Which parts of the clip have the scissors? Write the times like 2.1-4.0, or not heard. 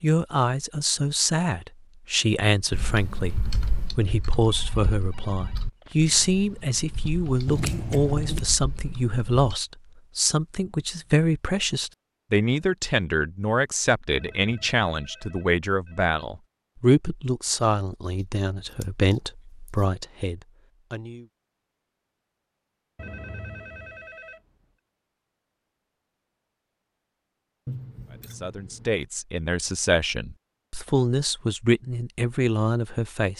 7.5-8.4, 18.7-19.9, 27.6-29.1.